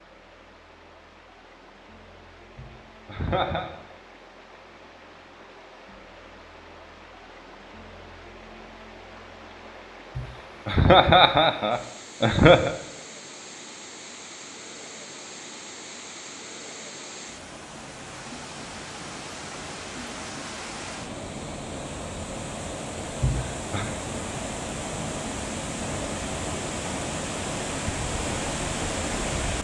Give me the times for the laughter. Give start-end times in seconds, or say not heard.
2.5-3.6, 10.2-12.8, 23.2-23.9.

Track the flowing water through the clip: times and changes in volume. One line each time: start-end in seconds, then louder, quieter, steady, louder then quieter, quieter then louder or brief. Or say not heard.
0.0-29.5 louder.